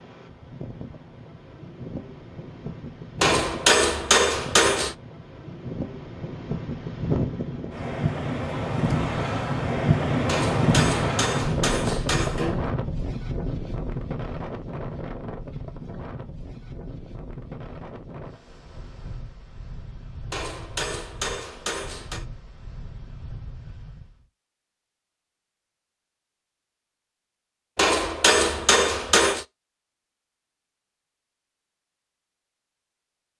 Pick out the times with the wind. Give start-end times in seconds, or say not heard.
0.0-24.2.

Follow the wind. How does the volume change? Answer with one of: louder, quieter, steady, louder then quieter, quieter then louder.
louder then quieter.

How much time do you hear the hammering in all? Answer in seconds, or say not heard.
8 s.